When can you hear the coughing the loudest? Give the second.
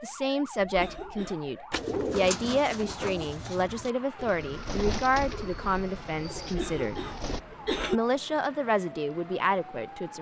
8 s.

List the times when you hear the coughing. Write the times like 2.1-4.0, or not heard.
0.6-1.6, 6.4-8.0.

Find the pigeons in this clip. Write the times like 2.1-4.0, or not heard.
1.7-7.4.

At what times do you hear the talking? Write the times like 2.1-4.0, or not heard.
0.0-7.0, 7.9-10.1.